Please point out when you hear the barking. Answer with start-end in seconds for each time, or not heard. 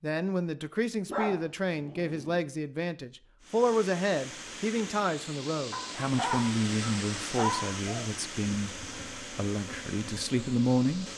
1.1-2.4, 5.7-8.1.